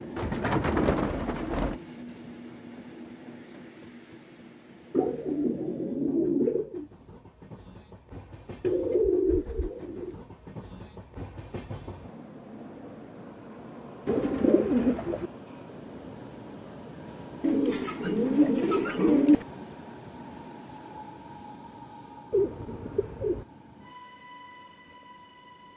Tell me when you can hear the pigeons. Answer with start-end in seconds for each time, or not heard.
0.1-1.8, 4.9-6.8, 8.6-10.2, 14.1-15.3, 17.4-19.4, 22.3-23.4.